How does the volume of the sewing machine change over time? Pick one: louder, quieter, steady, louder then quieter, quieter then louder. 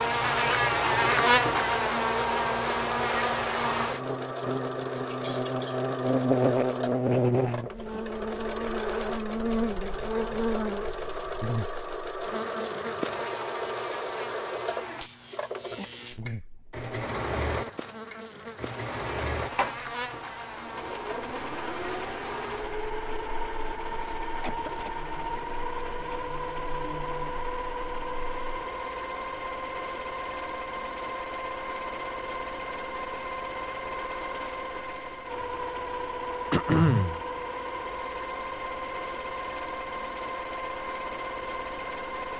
steady.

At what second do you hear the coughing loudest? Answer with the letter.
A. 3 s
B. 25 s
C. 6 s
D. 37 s
D.